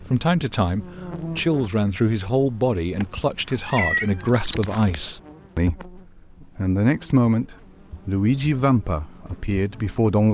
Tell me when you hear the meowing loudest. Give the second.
4 s.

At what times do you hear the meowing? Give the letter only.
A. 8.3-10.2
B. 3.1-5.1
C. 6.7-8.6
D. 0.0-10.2
B.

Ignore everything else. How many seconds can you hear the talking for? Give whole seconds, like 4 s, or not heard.
10 s.